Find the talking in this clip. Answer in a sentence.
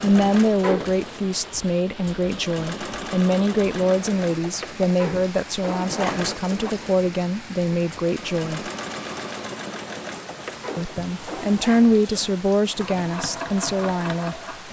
The talking can be heard from 0.0 to 8.6 s and from 10.8 to 14.6 s.